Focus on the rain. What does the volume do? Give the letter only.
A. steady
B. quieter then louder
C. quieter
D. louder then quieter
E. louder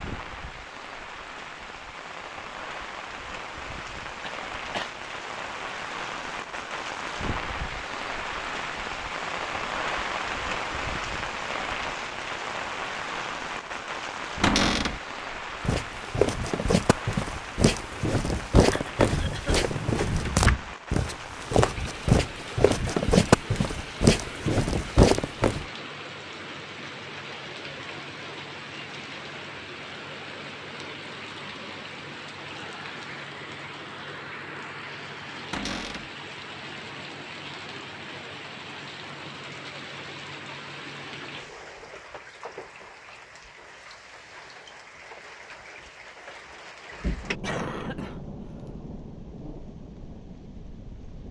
C.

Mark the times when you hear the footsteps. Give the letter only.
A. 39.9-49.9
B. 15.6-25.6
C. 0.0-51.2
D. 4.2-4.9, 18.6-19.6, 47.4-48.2
B.